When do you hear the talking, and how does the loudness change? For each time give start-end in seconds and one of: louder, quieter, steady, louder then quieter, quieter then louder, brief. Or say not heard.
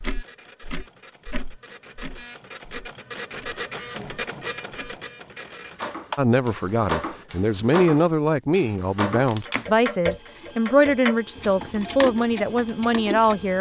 6.2-13.5 steady.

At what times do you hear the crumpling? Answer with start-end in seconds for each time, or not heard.
9.2-9.7.